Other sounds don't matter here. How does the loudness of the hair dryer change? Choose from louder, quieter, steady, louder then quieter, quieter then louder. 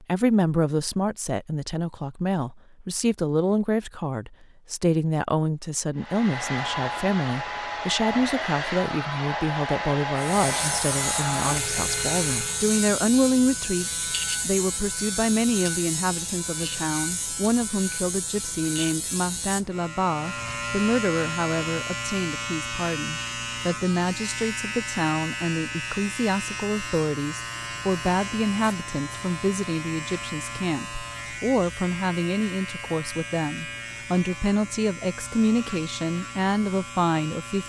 steady.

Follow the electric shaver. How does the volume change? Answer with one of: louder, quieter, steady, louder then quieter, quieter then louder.
quieter.